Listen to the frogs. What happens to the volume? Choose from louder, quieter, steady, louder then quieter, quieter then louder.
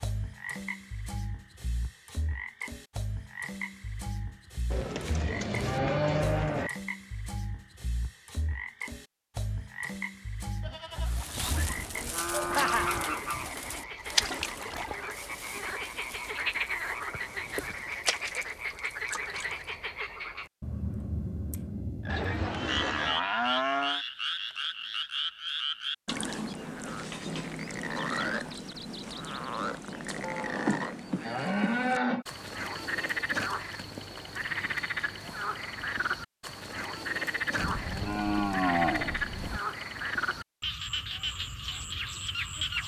louder.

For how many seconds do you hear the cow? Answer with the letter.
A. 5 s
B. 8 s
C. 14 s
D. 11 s
D.